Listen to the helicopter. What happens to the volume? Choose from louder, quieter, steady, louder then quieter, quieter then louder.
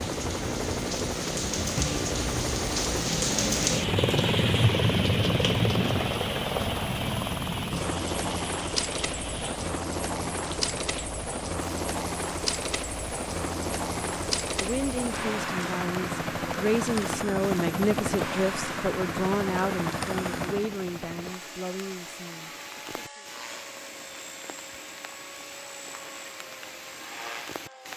quieter.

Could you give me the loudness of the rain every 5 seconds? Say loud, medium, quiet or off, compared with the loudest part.
loud, loud, quiet, quiet, quiet, quiet.